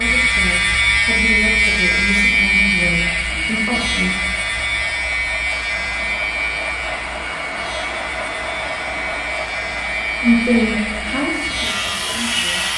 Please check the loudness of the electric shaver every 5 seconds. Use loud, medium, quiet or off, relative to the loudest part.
loud, medium, medium.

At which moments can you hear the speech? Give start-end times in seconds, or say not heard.
0.0-4.2, 10.2-12.7.